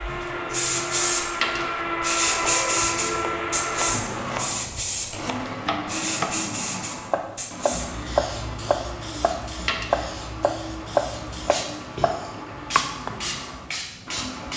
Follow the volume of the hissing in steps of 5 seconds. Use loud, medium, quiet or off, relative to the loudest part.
loud, medium, medium.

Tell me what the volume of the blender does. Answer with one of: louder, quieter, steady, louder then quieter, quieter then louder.
quieter.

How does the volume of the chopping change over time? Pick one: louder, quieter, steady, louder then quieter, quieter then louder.
louder.